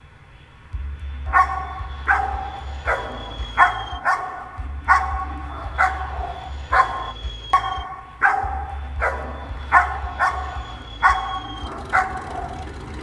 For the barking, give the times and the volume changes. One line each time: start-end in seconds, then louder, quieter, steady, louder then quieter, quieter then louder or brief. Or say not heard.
1.2-12.7 steady.